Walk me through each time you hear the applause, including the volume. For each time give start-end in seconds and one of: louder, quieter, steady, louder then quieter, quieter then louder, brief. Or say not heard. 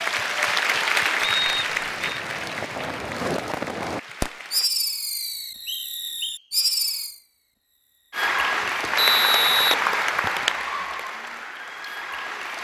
0.0-4.7 quieter
8.1-12.5 quieter.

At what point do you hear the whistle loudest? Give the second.
9 s.